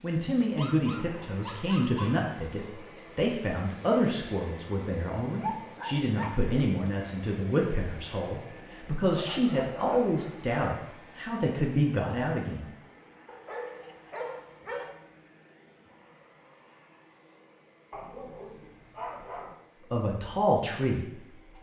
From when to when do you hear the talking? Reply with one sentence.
You can hear the talking from 0.0 to 12.7 s and from 19.9 to 21.4 s.